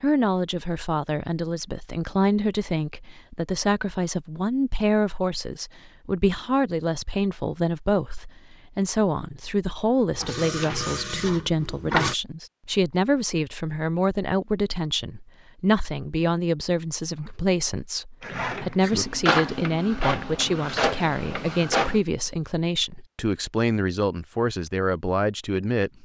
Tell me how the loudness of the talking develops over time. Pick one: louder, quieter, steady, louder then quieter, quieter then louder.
steady.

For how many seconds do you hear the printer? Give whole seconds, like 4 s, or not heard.
6 s.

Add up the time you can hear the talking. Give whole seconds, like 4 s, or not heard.
26 s.